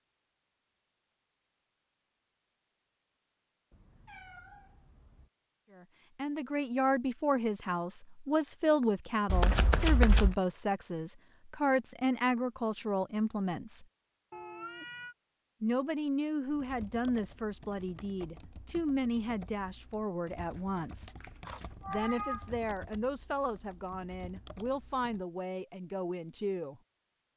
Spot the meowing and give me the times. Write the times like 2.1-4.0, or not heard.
3.7-5.3, 14.3-15.2, 21.4-22.6.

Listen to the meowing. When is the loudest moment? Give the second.
22 s.